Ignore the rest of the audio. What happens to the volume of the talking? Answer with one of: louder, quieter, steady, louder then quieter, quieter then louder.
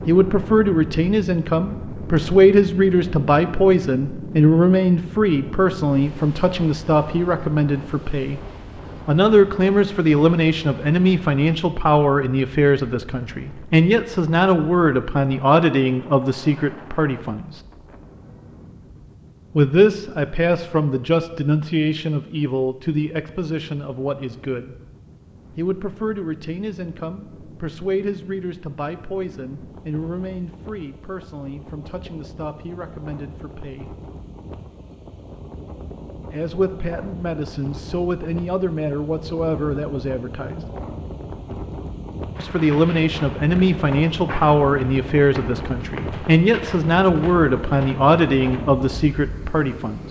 quieter then louder.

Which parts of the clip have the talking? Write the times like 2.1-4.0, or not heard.
0.1-8.4, 9.1-17.6, 19.6-24.8, 25.6-33.9, 36.3-40.6, 42.4-50.0.